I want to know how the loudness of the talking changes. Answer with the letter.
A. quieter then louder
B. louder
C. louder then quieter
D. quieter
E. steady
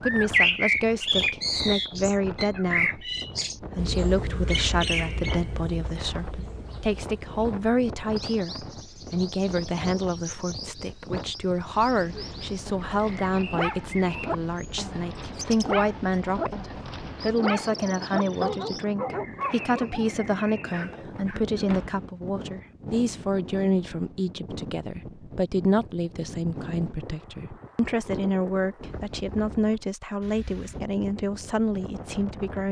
E.